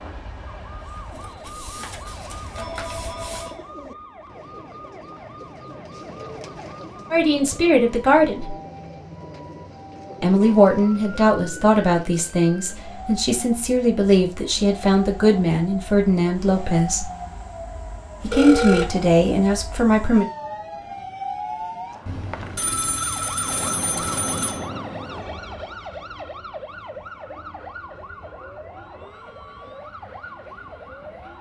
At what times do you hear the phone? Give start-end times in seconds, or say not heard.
1.1-3.6, 18.3-18.9, 22.1-24.7.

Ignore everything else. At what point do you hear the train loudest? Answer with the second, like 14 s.
24 s.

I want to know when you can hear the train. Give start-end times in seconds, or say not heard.
0.0-3.5, 23.4-31.3.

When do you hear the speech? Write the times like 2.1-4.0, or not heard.
7.1-8.6, 10.2-17.1, 18.2-20.2.